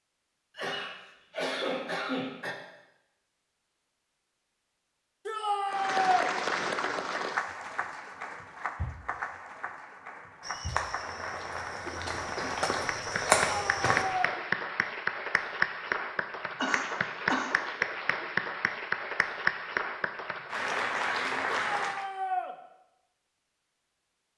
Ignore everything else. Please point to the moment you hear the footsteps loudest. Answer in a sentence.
The loudest moment of the footsteps is at 13 seconds.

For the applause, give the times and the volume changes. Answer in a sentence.
The applause can be heard from 5.7 to 22.1 s, getting quieter then louder.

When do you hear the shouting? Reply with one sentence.
You can hear the shouting from 5.2 to 6.3 s, from 13.4 to 14.3 s and from 21.5 to 22.6 s.